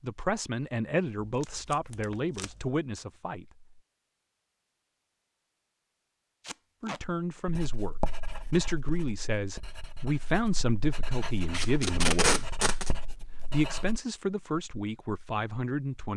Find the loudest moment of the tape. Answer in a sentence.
The loudest moment of the tape is at 12 seconds.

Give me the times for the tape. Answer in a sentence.
You can hear the tape from 1.2 to 2.7 s, from 6.4 to 7.0 s and from 11.5 to 12.9 s.